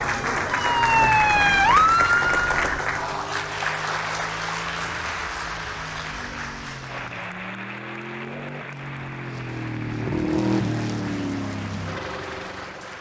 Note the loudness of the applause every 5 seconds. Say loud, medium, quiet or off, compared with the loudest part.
loud, medium, quiet.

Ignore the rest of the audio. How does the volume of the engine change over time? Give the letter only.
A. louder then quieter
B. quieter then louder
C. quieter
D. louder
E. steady
D.